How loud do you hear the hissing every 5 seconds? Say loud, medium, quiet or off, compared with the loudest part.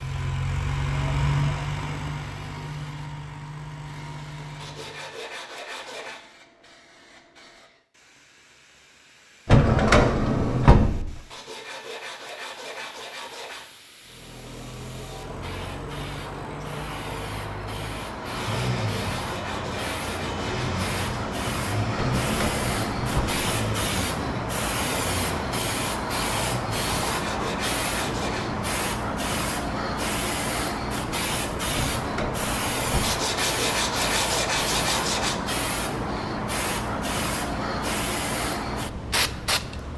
quiet, quiet, quiet, medium, loud, loud, loud, loud.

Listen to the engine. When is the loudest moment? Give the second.
1 s.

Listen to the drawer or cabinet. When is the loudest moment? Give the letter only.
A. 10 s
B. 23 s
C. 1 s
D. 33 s
A.